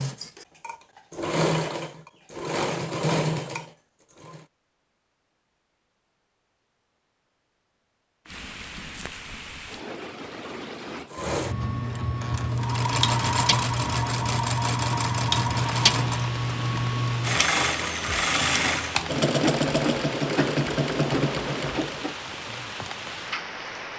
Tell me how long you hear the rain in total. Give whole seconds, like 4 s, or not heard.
16 s.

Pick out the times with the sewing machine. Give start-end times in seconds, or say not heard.
0.0-4.5, 11.1-22.1.